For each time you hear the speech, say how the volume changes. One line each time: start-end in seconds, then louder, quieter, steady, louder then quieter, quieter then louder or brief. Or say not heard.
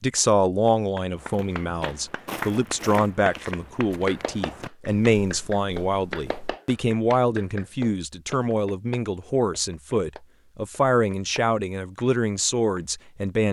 0.0-13.4 steady.